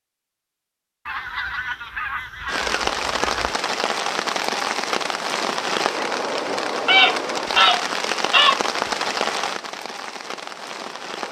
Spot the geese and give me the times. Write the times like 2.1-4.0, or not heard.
1.1-3.5, 6.8-8.6.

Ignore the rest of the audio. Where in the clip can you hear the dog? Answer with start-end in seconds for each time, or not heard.
not heard.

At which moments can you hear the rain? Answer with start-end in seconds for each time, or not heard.
2.5-11.2.